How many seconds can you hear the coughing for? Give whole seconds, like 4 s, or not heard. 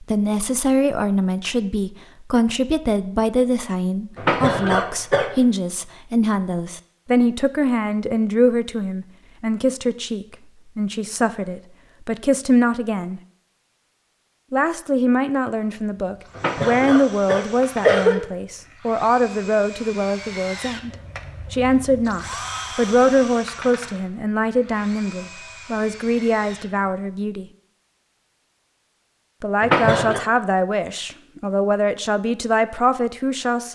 4 s.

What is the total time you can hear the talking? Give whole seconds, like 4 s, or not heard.
30 s.